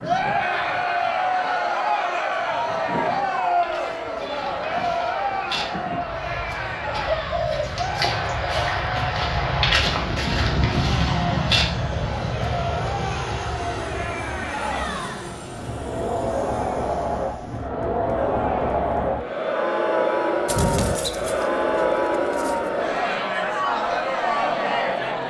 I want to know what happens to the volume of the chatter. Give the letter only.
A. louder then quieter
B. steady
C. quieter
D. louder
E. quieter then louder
E.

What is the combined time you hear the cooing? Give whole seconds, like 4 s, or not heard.
4 s.